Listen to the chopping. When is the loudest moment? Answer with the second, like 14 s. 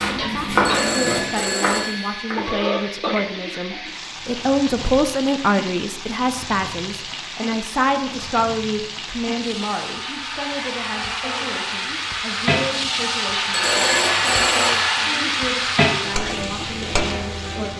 1 s.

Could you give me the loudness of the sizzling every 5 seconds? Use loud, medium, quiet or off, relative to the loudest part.
medium, medium, loud, loud.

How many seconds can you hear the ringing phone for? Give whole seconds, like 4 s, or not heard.
3 s.